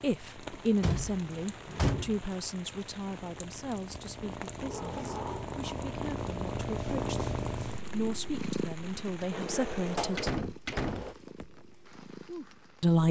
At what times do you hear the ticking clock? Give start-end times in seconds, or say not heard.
not heard.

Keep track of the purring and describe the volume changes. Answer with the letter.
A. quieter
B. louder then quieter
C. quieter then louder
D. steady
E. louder
B.